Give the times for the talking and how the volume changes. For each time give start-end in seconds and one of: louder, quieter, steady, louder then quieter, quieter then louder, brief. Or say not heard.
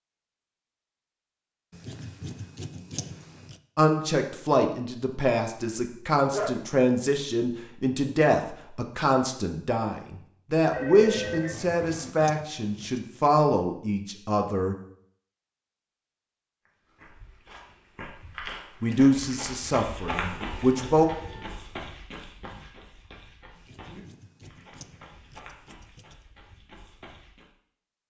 3.8-14.8 steady
18.8-21.1 brief.